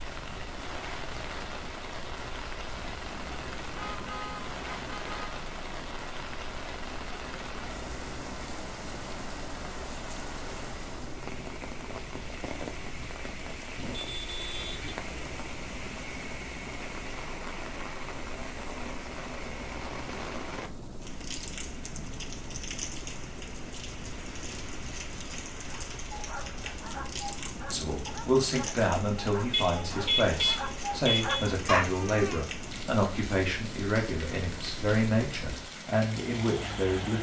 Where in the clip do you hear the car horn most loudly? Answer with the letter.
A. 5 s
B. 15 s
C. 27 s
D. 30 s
D.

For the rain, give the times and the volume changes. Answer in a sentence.
The rain can be heard from 0.0 to 37.1 s, at a steady volume.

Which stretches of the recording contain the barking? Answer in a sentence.
The barking can be heard from 25.7 to 32.5 s.